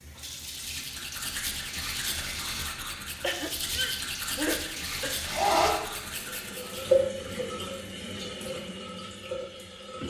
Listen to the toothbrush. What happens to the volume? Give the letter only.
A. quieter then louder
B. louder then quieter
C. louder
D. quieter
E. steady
E.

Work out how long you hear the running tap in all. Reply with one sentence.
The running tap can be heard for 10 seconds in total.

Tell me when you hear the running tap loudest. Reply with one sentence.
The volume of the running tap peaks at 7 seconds.